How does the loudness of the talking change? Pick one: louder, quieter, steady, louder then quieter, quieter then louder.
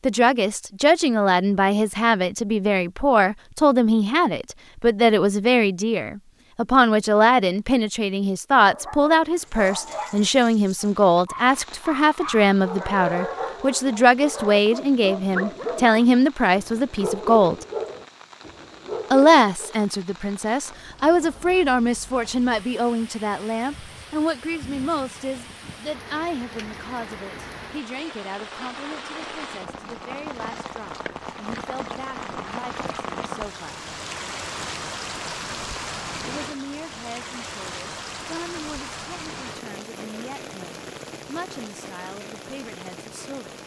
quieter.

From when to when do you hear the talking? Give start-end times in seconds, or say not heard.
0.0-17.6, 19.1-33.9, 36.3-43.5.